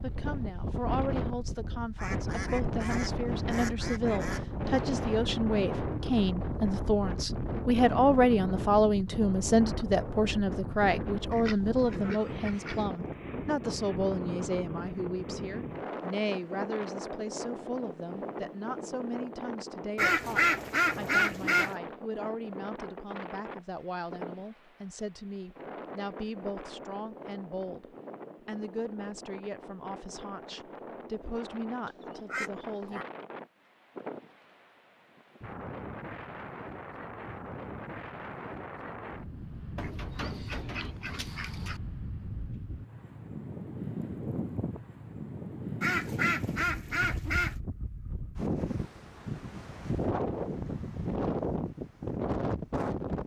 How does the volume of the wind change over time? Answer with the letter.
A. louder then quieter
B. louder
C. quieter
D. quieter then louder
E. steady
D.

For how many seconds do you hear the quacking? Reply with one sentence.
You can hear the quacking for 11 seconds altogether.